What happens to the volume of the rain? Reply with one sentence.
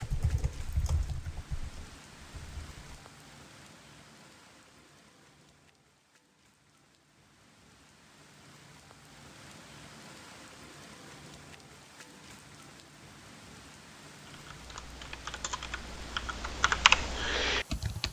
The loudness of the rain goes down, then up.